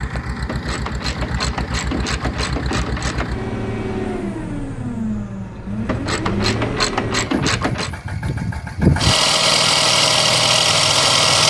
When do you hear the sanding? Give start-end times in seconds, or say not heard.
not heard.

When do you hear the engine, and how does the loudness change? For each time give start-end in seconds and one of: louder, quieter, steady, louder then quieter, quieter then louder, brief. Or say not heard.
0.0-11.4 louder.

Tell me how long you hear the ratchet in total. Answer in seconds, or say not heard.
5 s.